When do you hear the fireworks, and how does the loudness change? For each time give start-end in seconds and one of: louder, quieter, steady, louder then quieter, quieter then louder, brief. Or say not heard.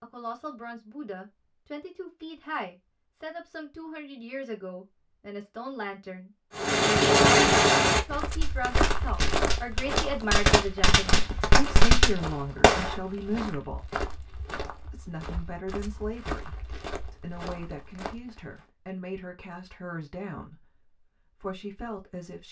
6.5-12.9 quieter then louder.